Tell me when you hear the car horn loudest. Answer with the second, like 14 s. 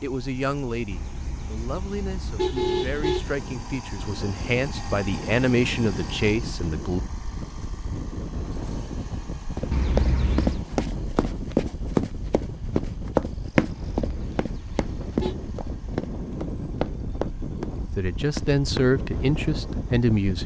3 s.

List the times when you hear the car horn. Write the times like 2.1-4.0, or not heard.
0.9-3.3, 9.7-10.7, 13.7-15.3.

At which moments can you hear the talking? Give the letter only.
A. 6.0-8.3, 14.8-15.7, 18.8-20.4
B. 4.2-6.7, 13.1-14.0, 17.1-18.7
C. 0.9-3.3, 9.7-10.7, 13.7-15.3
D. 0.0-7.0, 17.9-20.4
D.